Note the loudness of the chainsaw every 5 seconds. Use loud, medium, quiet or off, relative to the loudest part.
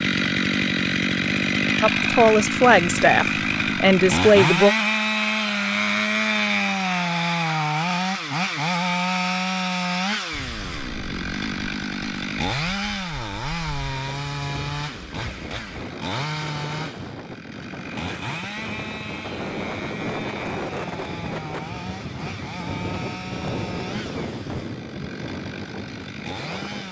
loud, loud, medium, medium, quiet, quiet.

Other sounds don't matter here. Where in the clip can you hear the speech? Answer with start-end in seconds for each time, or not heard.
1.8-4.8.